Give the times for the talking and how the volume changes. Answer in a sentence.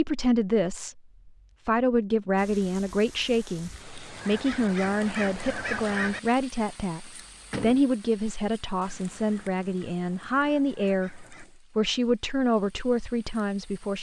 The talking can be heard from 0.0 to 13.9 s, at a steady volume.